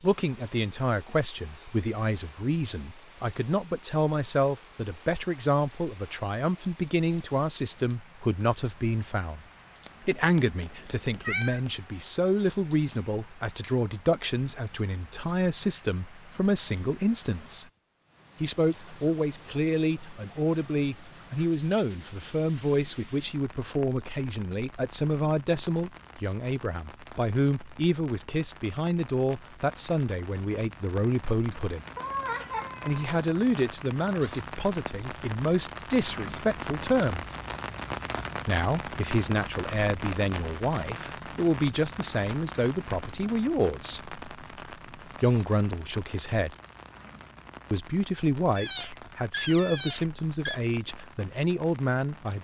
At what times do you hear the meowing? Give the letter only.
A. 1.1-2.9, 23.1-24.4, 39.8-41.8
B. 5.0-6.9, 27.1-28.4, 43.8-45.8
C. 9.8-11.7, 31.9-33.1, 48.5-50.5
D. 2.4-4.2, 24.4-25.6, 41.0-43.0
C.